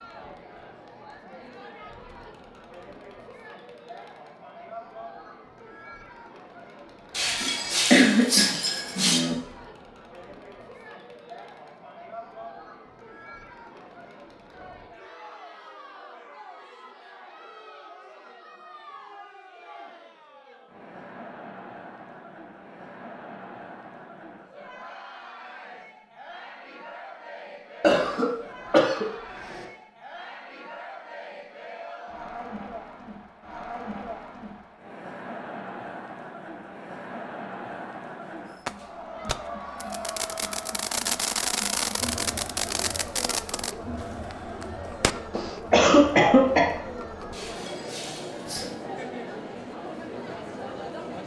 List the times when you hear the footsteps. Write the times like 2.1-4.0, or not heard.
not heard.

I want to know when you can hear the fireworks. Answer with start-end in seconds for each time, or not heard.
38.6-45.6.